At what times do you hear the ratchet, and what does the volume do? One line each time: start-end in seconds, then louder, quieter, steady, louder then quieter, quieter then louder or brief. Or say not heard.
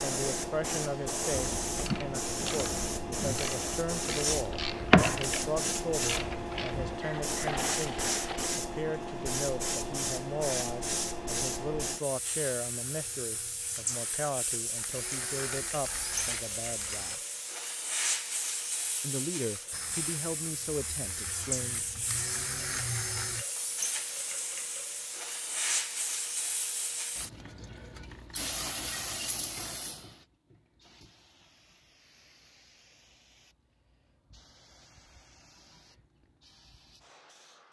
1.3-8.5 louder then quieter.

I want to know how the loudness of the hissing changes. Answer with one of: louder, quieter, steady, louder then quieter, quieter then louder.
quieter.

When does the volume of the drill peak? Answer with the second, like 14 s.
23 s.